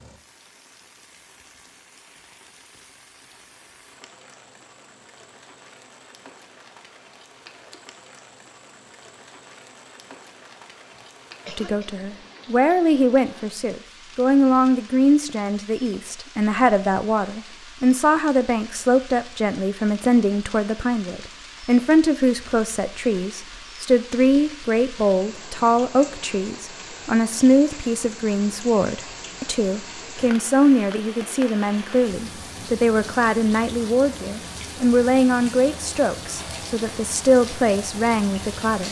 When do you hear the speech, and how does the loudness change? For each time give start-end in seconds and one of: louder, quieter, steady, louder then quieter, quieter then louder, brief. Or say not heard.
11.6-38.8 steady.